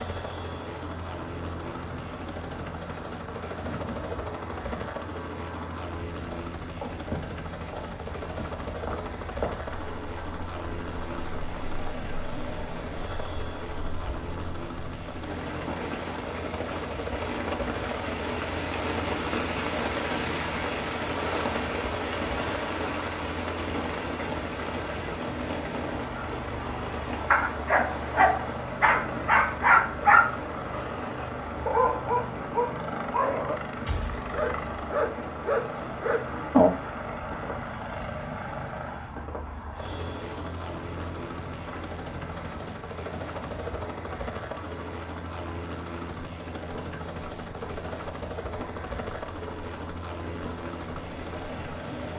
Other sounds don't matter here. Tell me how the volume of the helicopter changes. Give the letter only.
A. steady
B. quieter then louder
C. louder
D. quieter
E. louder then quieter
A.